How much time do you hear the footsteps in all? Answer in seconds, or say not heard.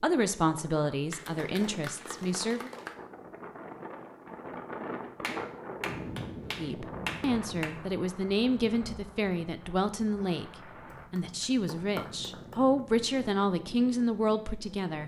not heard.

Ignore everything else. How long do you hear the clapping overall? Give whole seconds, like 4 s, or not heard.
6 s.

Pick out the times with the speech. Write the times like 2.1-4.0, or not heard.
0.0-2.7, 6.5-15.0.